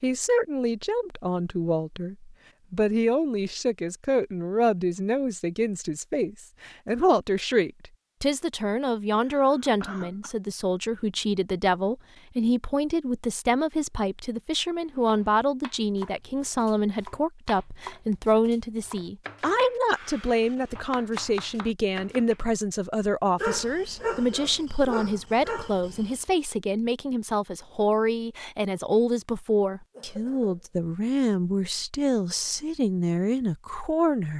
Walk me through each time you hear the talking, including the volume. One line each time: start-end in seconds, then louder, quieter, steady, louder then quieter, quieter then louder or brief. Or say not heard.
0.0-34.3 steady.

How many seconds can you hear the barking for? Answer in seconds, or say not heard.
3 s.